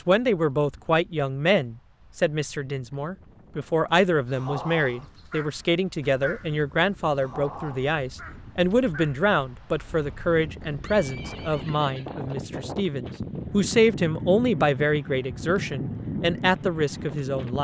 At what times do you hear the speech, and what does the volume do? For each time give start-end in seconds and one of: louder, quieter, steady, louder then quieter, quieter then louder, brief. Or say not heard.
0.1-17.6 steady.